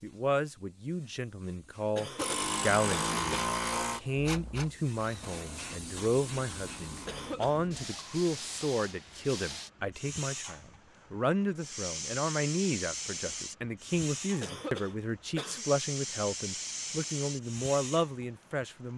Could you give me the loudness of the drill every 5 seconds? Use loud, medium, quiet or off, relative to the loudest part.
loud, quiet, off, off.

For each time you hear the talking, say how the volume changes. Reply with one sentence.
You can hear the talking from 0.0 to 18.9 s, at a steady volume.